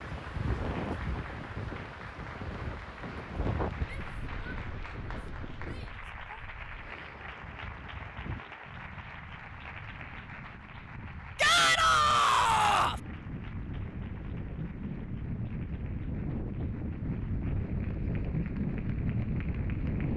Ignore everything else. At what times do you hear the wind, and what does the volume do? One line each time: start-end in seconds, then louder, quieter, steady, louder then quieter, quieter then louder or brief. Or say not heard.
0.0-20.1 quieter then louder.